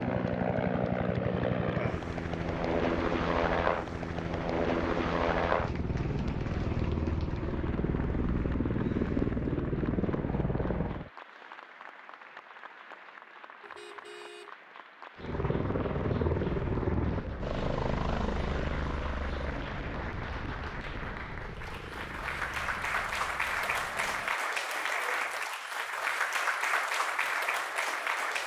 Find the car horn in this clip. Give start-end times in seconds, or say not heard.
13.6-14.6.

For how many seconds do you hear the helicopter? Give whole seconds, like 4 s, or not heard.
20 s.